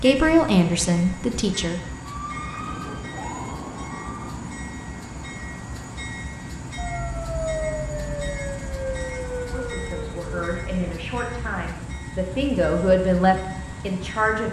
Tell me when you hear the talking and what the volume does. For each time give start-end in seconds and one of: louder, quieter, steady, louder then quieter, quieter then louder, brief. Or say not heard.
0.0-1.8 brief
9.5-14.4 louder.